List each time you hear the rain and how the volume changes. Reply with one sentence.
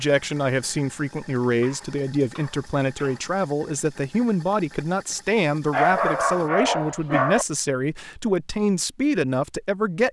You can't hear the rain here.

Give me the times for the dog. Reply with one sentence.
You can hear the dog from 1.5 to 3.3 s and from 5.7 to 7.5 s.